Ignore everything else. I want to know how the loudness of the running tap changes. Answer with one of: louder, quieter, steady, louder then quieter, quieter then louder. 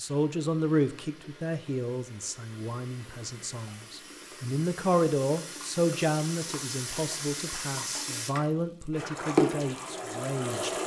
louder.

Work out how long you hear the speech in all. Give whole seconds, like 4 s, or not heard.
11 s.